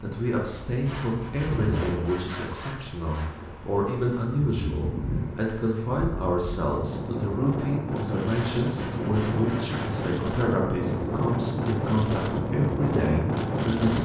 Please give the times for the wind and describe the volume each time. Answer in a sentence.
The wind can be heard from 0.0 to 14.0 s, getting louder.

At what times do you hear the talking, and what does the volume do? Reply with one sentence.
You can hear the talking from 0.0 to 14.0 s, at a steady volume.